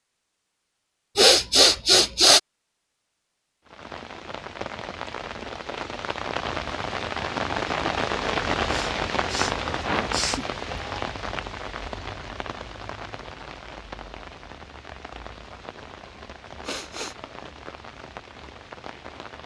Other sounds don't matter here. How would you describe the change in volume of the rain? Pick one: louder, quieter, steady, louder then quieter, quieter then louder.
louder then quieter.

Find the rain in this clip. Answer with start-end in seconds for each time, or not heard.
3.6-19.4.